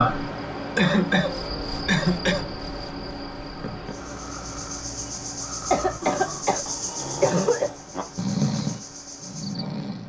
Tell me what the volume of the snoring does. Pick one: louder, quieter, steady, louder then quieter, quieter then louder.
louder.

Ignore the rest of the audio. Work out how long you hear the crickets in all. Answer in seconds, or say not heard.
10 s.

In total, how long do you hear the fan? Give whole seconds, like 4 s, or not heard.
10 s.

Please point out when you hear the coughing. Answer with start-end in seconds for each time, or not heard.
0.8-2.5, 5.7-7.7.